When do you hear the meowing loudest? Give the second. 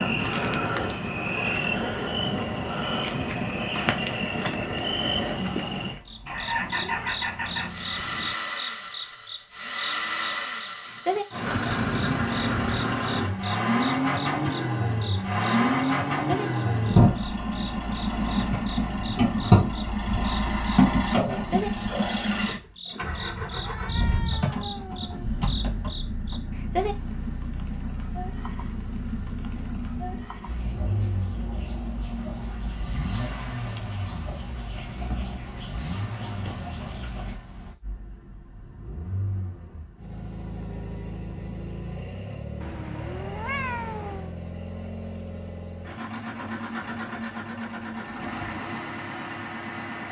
44 s.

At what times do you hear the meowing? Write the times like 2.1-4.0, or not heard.
6.3-8.3, 23.6-25.4, 42.6-44.3.